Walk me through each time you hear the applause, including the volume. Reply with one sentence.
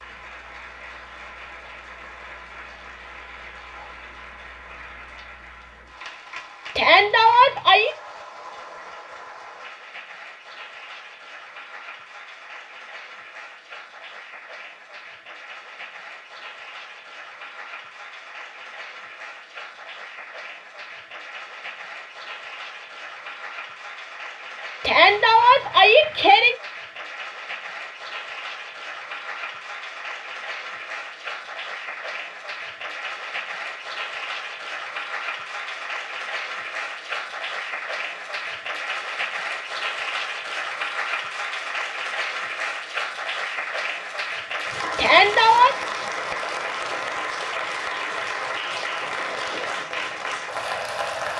You can hear the applause from 0.0 to 51.3 s, getting louder.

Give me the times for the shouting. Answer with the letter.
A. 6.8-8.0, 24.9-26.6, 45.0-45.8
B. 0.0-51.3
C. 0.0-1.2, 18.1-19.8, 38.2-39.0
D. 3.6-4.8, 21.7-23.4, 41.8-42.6
A.